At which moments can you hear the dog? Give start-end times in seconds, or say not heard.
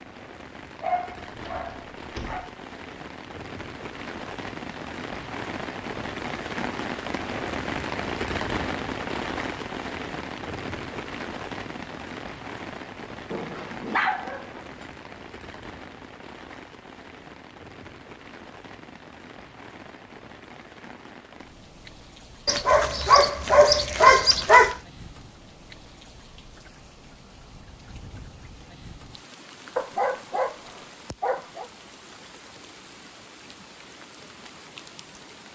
0.8-2.5, 13.3-14.8, 22.4-24.8, 29.8-31.7.